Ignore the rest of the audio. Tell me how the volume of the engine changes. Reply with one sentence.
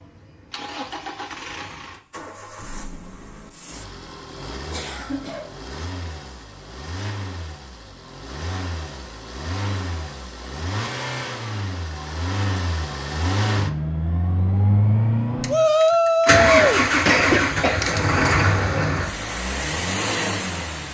The loudness of the engine goes up.